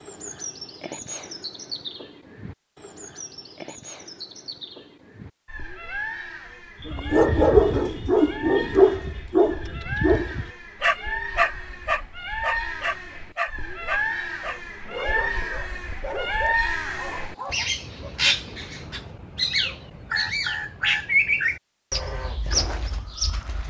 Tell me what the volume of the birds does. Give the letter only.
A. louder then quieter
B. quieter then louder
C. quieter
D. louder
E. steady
D.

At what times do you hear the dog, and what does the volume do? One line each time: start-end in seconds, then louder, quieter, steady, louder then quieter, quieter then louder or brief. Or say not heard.
6.8-17.7 quieter.